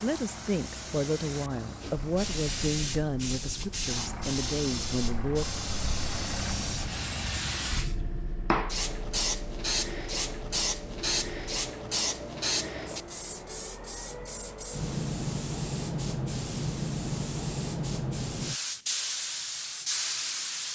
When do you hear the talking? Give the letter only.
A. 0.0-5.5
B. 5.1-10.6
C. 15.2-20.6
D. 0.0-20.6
A.